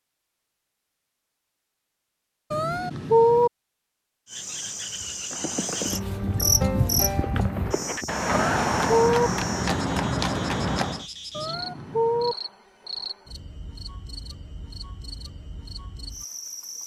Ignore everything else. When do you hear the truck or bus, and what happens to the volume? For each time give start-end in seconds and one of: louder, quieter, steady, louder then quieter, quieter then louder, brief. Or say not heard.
not heard.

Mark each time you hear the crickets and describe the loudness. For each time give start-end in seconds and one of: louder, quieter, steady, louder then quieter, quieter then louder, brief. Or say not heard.
4.2-16.8 quieter.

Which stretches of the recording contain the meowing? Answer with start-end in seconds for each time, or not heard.
2.5-3.5, 8.3-9.3, 11.3-12.3.